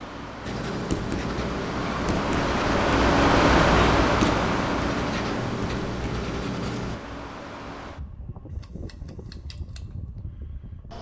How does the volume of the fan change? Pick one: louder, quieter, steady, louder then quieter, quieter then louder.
louder then quieter.